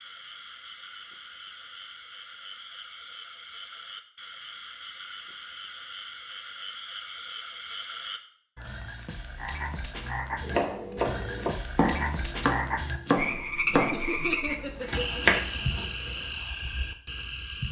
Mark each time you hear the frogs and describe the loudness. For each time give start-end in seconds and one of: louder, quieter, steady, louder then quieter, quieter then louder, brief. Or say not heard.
0.0-17.6 louder.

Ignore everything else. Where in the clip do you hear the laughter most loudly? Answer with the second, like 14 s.
14 s.